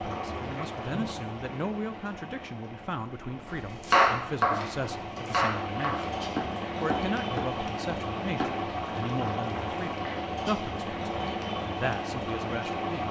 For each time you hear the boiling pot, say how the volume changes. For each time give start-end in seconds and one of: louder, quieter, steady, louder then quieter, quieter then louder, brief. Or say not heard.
0.0-13.0 louder.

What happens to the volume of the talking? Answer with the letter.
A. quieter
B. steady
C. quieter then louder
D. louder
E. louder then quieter
B.